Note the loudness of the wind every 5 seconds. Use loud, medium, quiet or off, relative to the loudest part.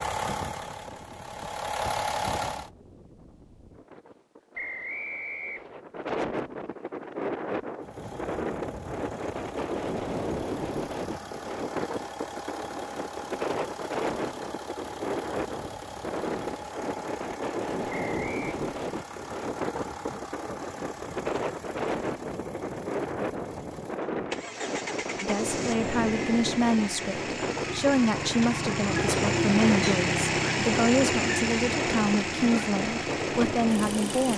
quiet, loud, loud, loud, loud, loud, loud.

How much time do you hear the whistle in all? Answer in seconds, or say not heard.
2 s.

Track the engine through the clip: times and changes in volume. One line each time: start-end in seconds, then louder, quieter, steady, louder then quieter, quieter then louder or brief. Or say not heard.
0.0-2.7 brief
7.8-34.3 louder.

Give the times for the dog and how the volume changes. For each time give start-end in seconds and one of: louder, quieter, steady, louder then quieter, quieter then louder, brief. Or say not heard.
not heard.